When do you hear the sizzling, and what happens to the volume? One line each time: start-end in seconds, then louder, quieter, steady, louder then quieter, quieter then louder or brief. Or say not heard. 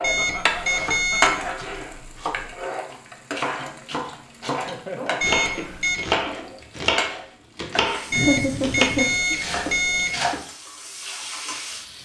0.0-12.0 quieter.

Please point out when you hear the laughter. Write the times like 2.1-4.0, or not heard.
0.1-1.9, 4.7-5.3, 8.1-9.3.